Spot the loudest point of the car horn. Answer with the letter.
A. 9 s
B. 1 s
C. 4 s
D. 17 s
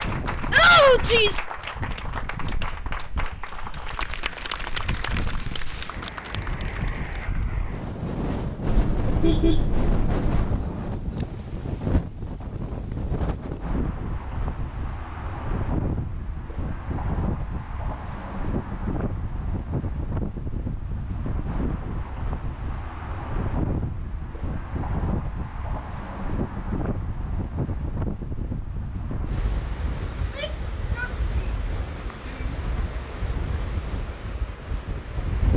A.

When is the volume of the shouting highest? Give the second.
1 s.